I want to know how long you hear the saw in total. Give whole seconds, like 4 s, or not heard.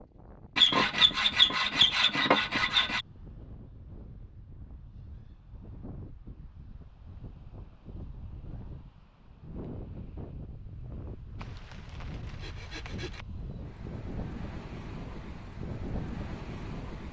4 s.